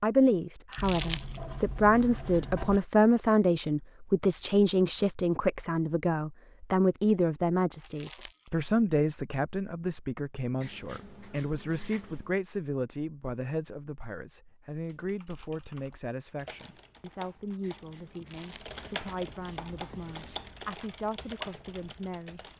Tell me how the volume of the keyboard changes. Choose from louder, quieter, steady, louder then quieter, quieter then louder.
louder.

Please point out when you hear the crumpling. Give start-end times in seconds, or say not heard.
0.7-1.4, 7.8-8.5, 18.1-18.8.